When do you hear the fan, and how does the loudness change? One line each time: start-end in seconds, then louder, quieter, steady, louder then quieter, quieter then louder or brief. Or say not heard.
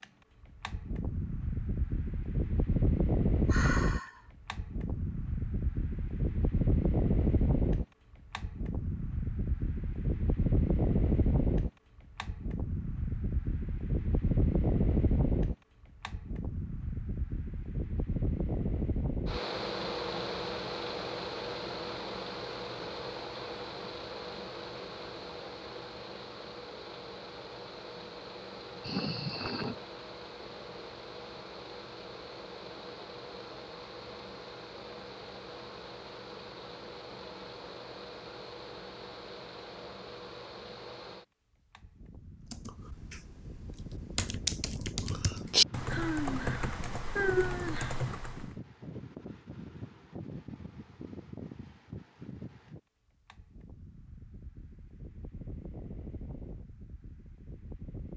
0.0-58.1 quieter.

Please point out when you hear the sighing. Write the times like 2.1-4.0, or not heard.
3.5-4.2, 28.8-29.8, 45.9-48.0.